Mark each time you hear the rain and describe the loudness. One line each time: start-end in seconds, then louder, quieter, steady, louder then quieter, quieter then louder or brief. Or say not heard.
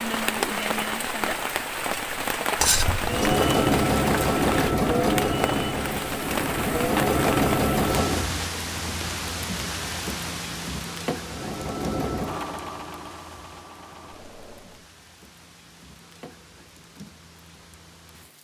0.0-18.3 quieter.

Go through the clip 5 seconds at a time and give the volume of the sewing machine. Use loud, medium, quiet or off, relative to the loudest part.
loud, loud, quiet, off.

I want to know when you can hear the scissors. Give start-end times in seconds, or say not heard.
2.5-3.3.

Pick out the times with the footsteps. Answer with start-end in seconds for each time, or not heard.
not heard.